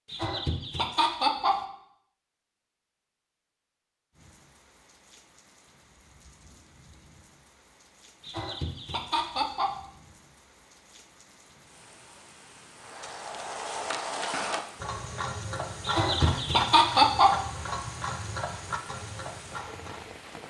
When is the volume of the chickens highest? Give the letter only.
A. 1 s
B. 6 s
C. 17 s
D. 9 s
C.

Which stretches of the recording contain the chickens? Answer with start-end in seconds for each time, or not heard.
0.1-1.6, 8.2-9.8, 15.8-17.4.